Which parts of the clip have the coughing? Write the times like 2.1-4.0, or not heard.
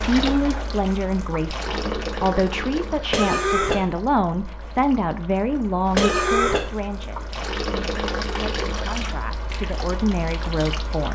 3.1-3.9, 6.0-6.7.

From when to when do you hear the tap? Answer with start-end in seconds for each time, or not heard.
0.0-11.0.